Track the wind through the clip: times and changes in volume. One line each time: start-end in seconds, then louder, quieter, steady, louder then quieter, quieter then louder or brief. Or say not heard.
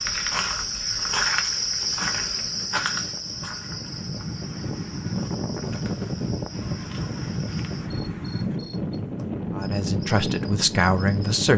0.0-11.5 louder.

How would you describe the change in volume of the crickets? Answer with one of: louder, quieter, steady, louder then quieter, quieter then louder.
quieter.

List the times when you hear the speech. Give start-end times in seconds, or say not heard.
9.6-11.5.